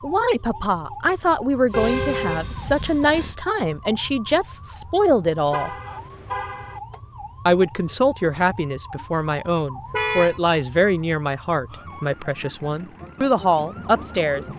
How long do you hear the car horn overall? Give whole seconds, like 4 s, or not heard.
3 s.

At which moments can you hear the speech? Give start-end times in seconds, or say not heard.
0.0-5.7, 7.5-14.4.